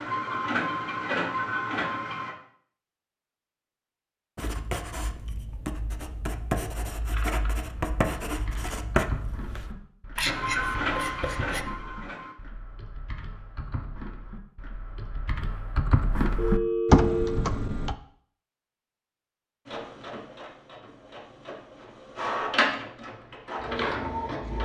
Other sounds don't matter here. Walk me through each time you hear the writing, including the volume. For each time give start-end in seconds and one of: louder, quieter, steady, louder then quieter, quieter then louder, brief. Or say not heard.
4.3-11.7 louder.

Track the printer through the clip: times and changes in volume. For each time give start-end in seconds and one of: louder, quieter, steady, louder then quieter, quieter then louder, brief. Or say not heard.
0.0-2.4 brief
10.2-12.3 brief
19.6-24.6 louder.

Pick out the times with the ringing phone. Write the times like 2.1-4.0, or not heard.
16.4-17.4.